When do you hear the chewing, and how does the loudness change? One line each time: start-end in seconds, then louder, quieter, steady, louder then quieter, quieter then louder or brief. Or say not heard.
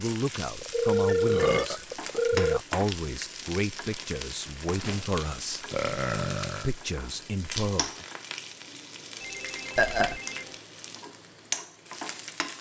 not heard.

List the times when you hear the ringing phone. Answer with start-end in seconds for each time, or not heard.
0.6-2.6, 4.8-5.2, 9.2-10.6.